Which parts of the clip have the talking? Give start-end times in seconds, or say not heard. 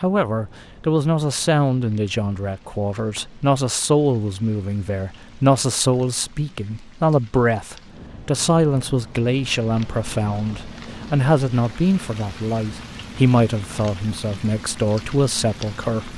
0.0-16.1.